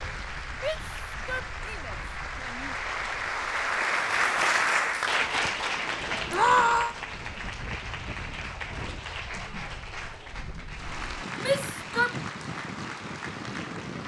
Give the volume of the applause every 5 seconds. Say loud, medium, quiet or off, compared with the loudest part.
loud, loud, medium.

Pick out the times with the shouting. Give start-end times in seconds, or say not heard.
0.6-2.8, 6.3-7.0, 11.4-12.2.